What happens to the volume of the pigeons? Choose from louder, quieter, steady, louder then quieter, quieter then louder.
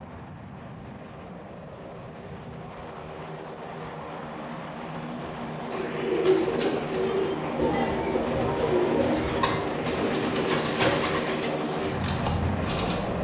quieter.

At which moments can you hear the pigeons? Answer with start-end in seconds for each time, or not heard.
5.7-13.1.